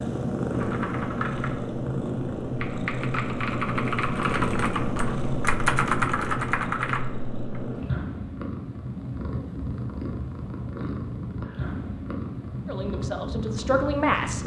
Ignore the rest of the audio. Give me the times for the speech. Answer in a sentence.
You can hear the speech from 12.7 to 14.4 s.